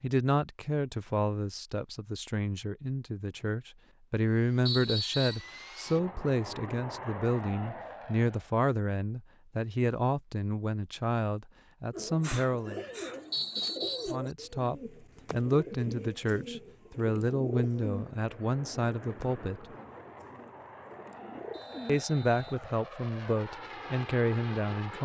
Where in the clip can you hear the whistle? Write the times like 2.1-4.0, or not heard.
4.7-5.5, 13.3-14.2, 21.5-22.6.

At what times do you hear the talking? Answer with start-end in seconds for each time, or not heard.
0.0-12.8, 14.1-19.6, 21.9-25.0.